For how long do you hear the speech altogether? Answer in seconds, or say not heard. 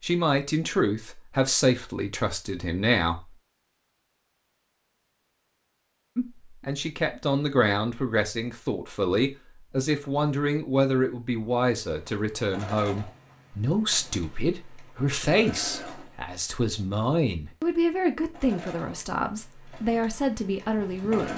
18 s.